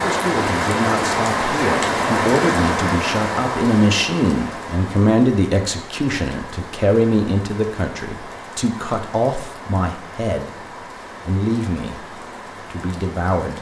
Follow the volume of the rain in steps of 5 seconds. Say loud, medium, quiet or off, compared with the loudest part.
loud, quiet, quiet.